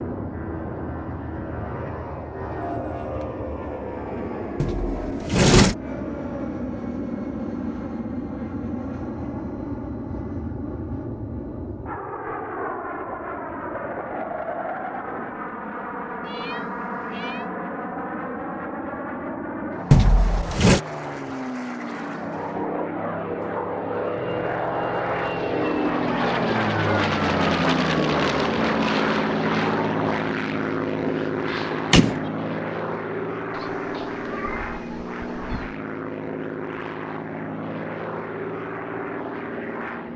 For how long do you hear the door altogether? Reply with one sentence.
The door can be heard for 3 seconds in total.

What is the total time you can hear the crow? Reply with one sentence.
You can't hear the crow here.